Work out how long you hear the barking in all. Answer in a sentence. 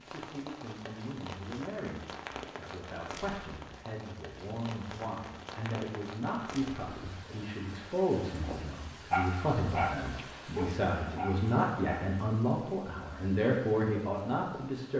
You can hear the barking for 3 seconds altogether.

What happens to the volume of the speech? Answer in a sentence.
The loudness of the speech goes up.